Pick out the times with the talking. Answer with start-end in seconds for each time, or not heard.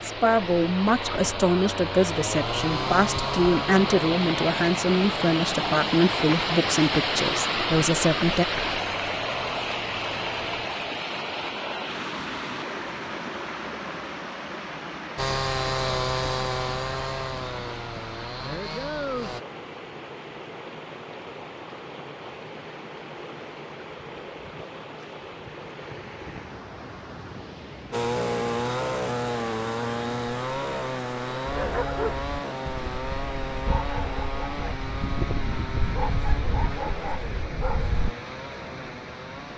0.0-8.4.